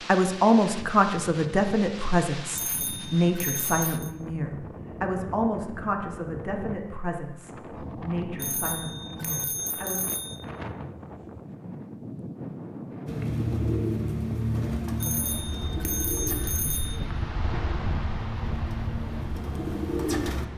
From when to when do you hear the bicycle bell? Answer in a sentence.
You can hear the bicycle bell from 2.5 to 4.1 s, from 8.3 to 10.4 s and from 15.0 to 17.0 s.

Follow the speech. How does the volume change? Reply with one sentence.
The volume of the speech goes down.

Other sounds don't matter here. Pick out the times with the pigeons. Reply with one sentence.
The pigeons can be heard from 13.1 to 20.4 s.